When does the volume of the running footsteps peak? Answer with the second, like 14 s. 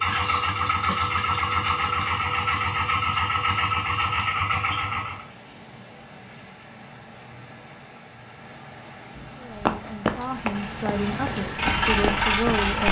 10 s.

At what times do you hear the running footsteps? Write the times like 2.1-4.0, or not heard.
9.6-12.8.